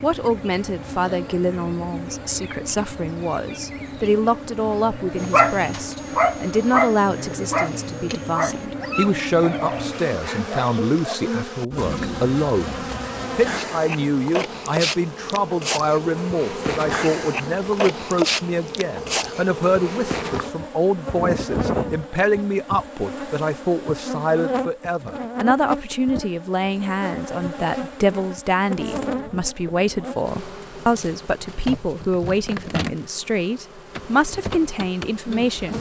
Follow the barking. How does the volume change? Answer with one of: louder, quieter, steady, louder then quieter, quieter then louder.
quieter.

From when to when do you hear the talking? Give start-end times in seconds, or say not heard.
0.0-35.7.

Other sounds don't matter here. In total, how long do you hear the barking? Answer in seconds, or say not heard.
6 s.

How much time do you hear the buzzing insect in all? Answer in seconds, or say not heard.
36 s.